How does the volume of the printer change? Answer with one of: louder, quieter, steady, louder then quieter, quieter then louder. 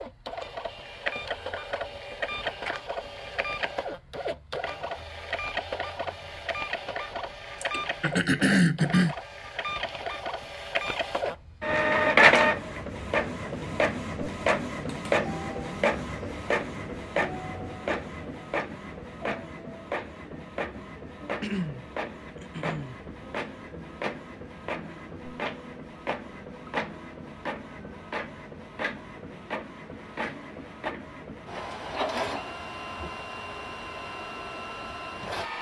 louder then quieter.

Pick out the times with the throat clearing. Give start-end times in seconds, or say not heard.
7.6-9.2, 21.3-23.0.